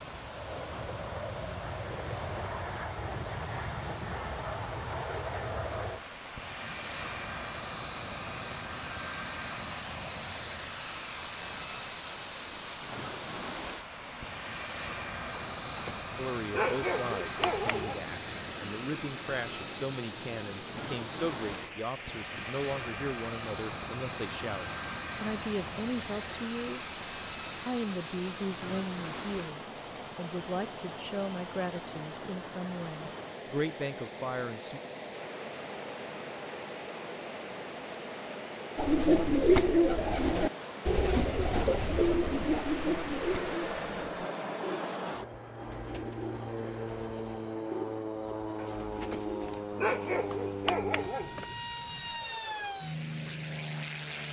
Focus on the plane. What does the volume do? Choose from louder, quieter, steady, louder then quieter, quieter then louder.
steady.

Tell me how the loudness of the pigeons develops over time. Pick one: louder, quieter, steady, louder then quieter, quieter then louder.
quieter.